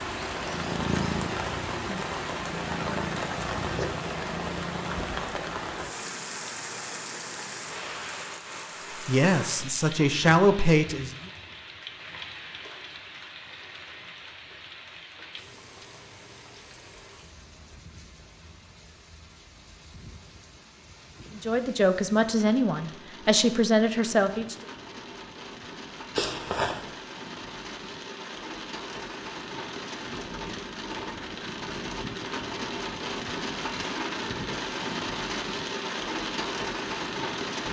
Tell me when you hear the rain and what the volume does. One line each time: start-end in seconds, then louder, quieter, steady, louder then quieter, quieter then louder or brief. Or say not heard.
0.0-37.6 quieter then louder.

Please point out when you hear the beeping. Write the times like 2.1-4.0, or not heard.
26.1-26.9.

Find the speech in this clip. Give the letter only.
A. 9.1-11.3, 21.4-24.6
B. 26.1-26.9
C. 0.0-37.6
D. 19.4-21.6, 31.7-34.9
A.